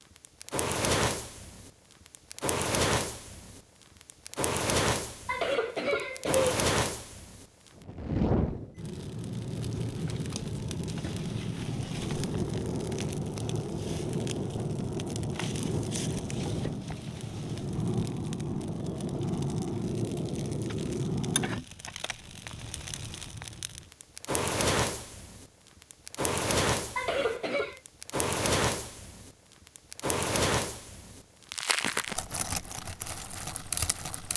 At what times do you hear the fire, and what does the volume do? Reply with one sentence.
The fire can be heard from 0.1 to 34.3 s, at a steady volume.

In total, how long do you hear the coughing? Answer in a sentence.
You can hear the coughing for 2 seconds altogether.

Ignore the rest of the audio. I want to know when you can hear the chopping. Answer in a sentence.
You can't hear the chopping here.